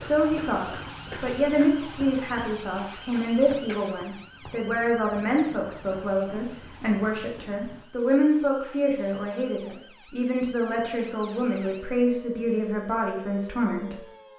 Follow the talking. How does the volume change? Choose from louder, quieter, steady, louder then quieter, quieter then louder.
steady.